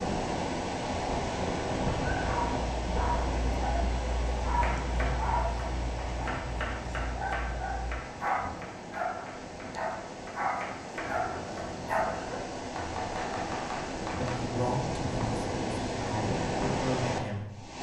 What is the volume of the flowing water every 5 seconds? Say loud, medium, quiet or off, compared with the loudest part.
loud, medium, medium, loud.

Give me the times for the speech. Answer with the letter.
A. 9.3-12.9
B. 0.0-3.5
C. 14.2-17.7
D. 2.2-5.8
C.